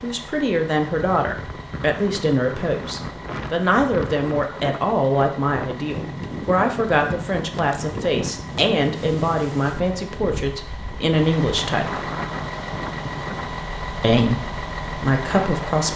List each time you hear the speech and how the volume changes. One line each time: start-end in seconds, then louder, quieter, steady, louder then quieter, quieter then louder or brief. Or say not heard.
0.0-12.1 steady
14.0-15.9 brief.